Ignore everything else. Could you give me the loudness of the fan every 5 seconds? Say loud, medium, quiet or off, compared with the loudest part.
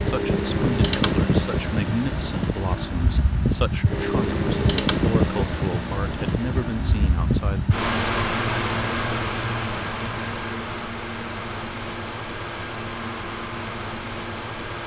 loud, loud, medium.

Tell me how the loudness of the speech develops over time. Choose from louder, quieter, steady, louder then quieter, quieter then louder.
steady.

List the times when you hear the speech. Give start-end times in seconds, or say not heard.
0.1-7.7.